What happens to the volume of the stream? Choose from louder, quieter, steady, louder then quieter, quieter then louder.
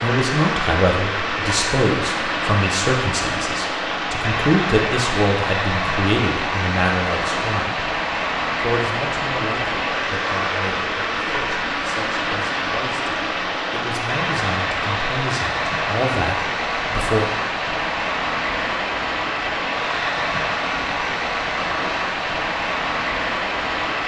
steady.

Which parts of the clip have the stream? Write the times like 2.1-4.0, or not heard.
0.0-24.0.